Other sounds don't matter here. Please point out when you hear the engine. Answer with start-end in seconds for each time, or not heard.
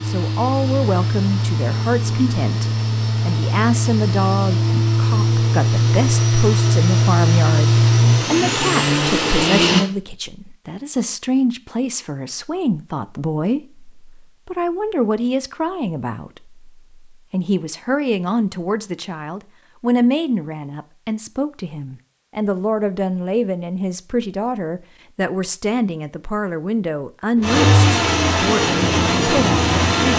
0.0-9.8, 27.4-30.1.